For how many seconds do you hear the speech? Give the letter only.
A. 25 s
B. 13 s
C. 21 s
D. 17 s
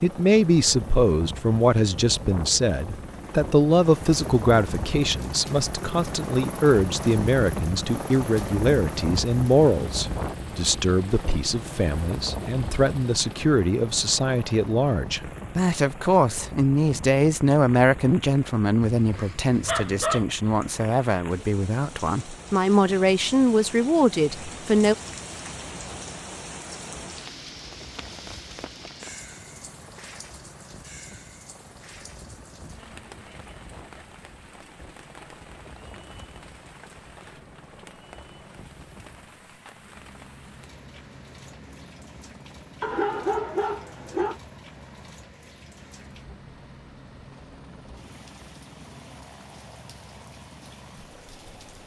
A.